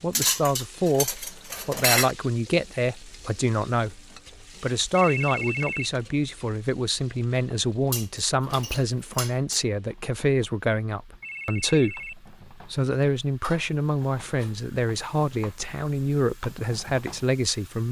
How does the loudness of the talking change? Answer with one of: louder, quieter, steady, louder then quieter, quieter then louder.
steady.